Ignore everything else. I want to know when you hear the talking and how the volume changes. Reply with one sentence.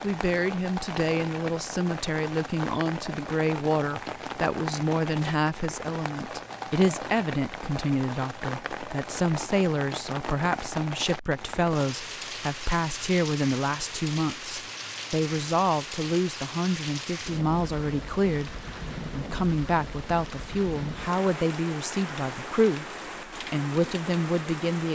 The talking can be heard from 0.0 to 24.9 s, at a steady volume.